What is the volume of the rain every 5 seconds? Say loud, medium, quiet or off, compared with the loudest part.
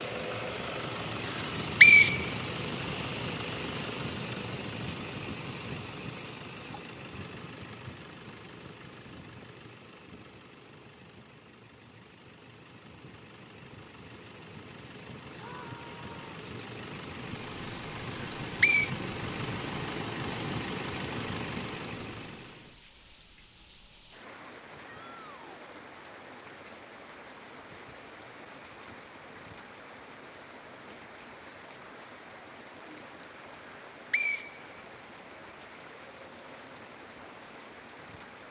off, off, off, loud, loud, loud, loud, loud.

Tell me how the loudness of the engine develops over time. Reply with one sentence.
The volume of the engine goes down, then up.